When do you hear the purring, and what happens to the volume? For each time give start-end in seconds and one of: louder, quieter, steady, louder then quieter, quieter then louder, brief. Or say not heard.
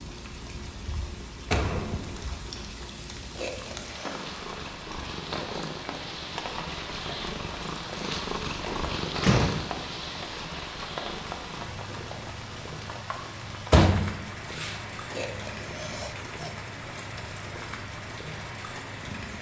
0.0-19.3 louder then quieter.